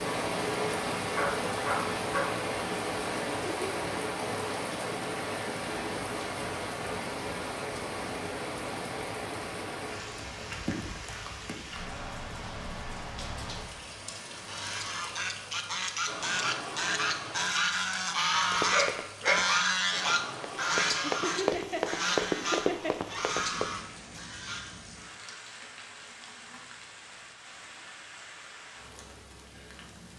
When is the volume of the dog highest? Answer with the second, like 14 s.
19 s.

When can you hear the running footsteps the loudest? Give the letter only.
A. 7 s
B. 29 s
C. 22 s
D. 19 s
C.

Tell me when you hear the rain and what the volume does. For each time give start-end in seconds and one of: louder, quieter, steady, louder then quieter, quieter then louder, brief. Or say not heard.
0.0-30.1 quieter.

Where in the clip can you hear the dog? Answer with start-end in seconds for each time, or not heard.
1.1-2.5, 18.7-19.8.